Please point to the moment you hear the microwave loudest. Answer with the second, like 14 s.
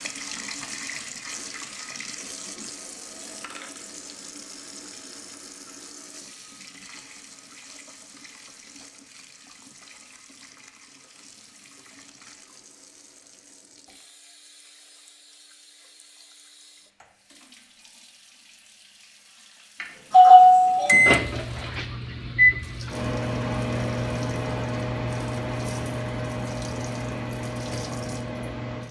21 s.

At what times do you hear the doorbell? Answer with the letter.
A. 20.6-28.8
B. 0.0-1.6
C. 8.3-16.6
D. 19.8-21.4
D.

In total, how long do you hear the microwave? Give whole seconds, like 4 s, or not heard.
8 s.